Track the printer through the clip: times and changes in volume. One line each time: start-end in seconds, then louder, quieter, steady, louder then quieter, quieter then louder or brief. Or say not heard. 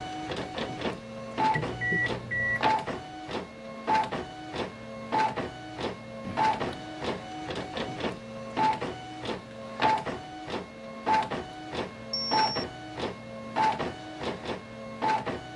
0.0-15.5 steady.